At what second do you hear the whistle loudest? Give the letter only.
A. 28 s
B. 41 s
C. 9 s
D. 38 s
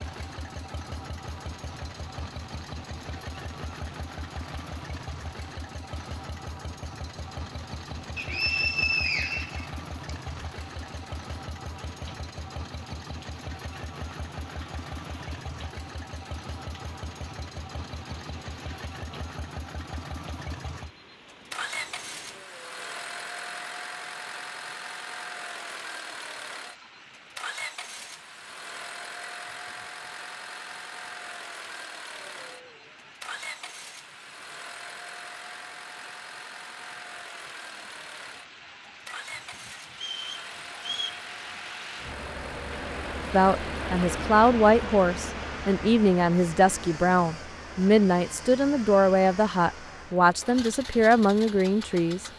C.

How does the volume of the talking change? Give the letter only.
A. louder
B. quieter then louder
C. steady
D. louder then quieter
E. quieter
C.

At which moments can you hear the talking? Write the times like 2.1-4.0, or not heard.
43.3-52.2.